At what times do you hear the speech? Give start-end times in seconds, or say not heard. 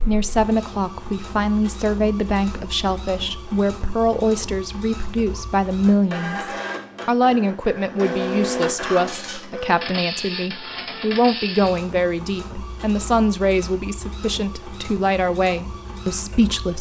0.0-16.7.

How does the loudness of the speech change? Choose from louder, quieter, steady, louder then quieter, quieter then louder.
steady.